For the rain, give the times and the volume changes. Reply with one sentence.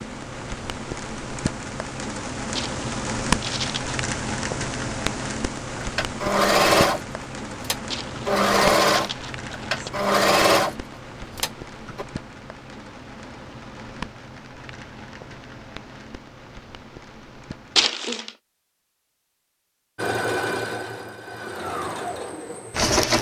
The rain can be heard from 0.0 to 17.9 s, getting quieter.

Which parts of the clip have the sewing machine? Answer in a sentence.
You can hear the sewing machine from 5.8 to 12.1 s and from 19.9 to 23.1 s.